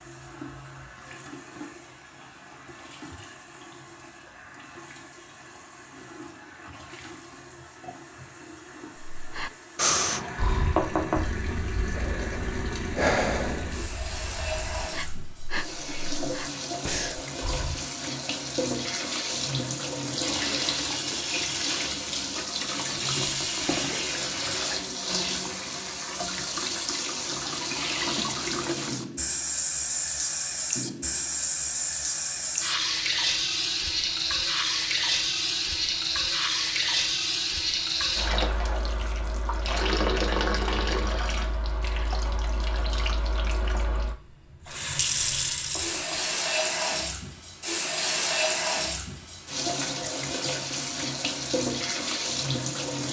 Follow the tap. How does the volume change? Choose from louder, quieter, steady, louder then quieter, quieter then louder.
louder.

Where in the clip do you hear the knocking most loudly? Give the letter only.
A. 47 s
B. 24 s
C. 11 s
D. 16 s
C.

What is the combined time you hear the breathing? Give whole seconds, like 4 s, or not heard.
9 s.